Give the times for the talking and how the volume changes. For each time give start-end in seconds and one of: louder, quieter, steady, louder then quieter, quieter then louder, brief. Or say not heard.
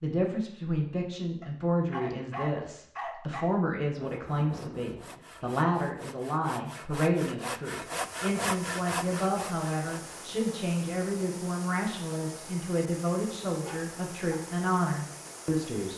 0.0-15.9 steady.